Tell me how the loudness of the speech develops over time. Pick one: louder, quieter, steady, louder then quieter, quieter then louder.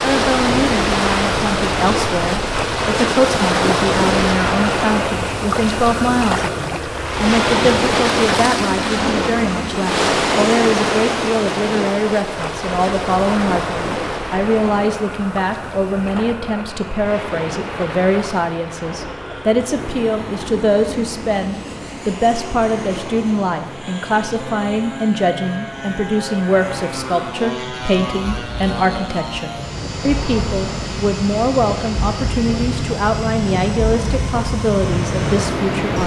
steady.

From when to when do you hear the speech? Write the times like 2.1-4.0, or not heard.
0.0-36.0.